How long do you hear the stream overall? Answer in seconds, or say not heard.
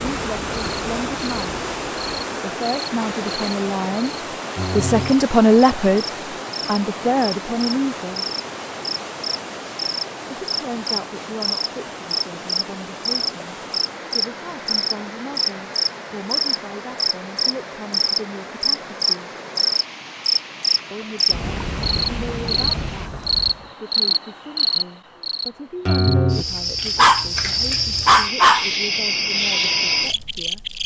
23 s.